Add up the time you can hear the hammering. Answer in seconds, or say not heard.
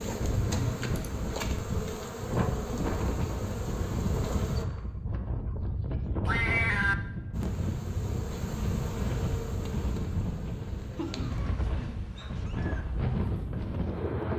not heard.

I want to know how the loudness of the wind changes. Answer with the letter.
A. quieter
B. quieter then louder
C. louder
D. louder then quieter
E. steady
E.